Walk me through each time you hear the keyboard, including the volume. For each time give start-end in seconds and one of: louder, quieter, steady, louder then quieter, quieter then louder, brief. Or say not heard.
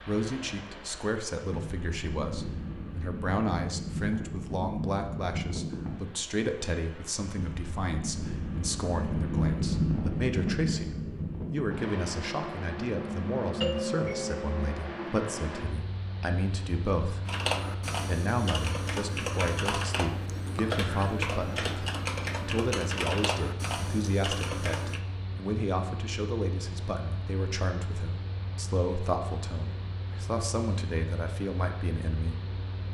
17.2-25.0 steady.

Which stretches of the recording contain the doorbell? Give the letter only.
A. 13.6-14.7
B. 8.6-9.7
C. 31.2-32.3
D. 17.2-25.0
A.